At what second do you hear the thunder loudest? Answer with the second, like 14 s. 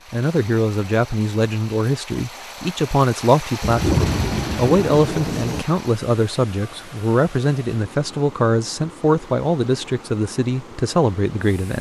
4 s.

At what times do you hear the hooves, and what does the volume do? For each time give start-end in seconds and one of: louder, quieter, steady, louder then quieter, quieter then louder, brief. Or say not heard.
not heard.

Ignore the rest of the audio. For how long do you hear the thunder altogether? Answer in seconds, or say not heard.
2 s.